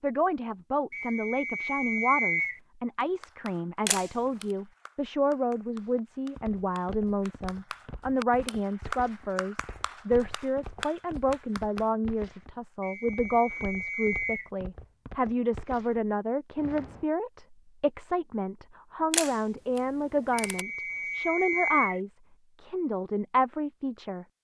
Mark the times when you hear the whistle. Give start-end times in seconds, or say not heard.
0.9-2.6, 12.8-14.5, 20.4-22.0.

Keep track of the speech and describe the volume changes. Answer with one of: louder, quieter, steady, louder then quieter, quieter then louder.
steady.